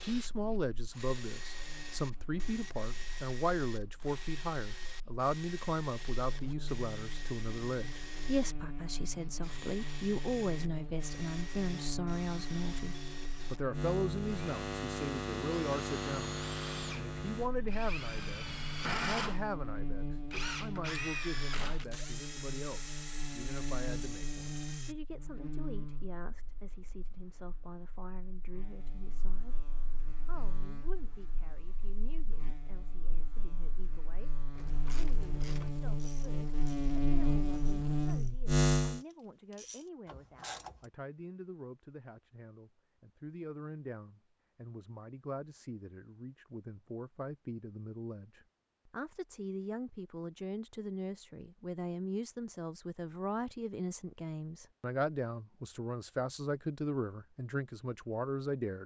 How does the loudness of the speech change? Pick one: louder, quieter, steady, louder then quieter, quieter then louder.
quieter then louder.